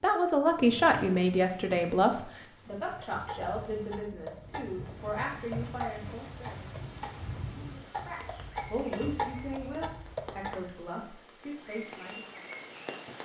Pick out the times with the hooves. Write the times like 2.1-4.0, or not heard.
3.0-10.8.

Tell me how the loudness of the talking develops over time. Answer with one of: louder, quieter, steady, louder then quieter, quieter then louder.
quieter.